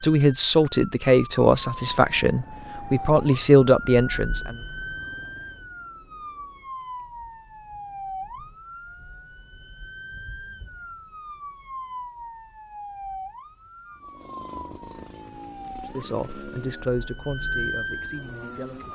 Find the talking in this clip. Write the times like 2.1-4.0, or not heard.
0.0-4.5, 15.9-18.9.